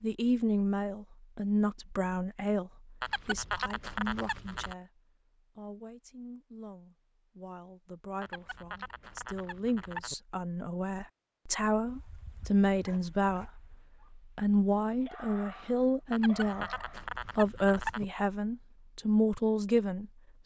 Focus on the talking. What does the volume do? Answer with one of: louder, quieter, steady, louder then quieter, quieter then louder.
quieter then louder.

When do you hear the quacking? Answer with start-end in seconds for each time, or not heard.
3.0-4.8, 8.2-10.2, 16.1-18.1.